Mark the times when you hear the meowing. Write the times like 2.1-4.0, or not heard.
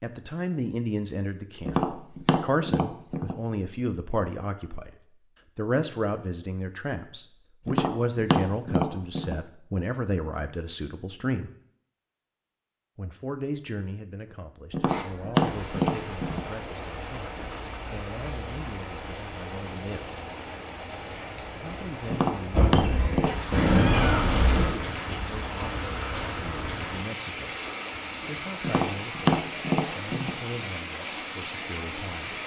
23.5-24.8.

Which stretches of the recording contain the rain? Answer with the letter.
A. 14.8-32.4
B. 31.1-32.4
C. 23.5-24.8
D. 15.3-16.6
A.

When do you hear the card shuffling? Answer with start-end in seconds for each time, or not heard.
not heard.